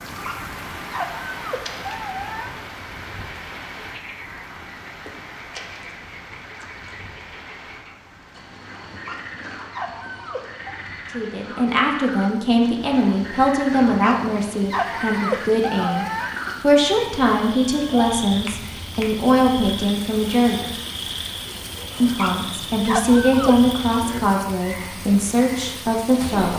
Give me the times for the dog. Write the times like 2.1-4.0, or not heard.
0.0-2.5, 8.8-10.8, 13.8-16.3, 22.0-23.8.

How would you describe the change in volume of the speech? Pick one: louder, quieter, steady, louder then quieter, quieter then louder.
steady.